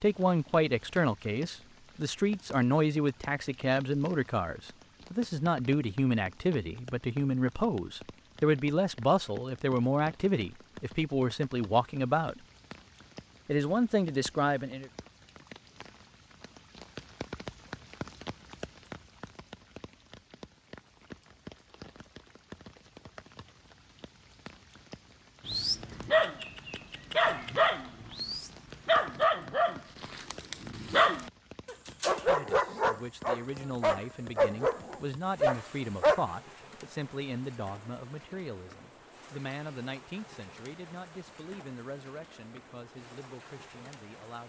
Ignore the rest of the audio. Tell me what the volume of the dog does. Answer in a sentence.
The loudness of the dog stays about the same.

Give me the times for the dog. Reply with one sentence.
The dog can be heard from 25.4 to 36.2 s.